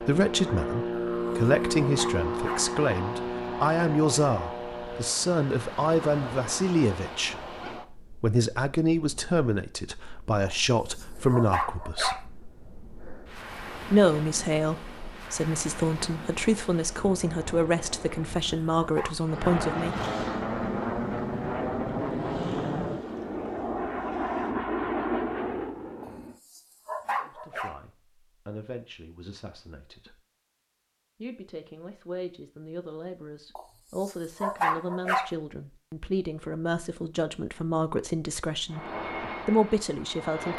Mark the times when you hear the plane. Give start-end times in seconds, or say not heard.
0.0-5.2, 19.2-26.4, 38.7-40.5.